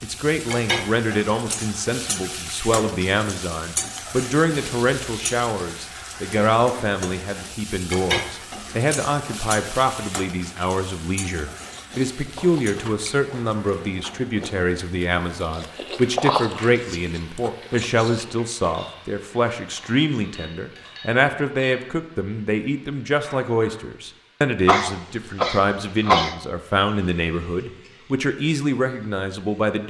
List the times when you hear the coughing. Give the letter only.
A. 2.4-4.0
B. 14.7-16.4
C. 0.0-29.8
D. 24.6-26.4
D.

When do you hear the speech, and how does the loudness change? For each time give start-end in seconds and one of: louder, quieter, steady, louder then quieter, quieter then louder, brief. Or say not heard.
0.0-29.8 steady.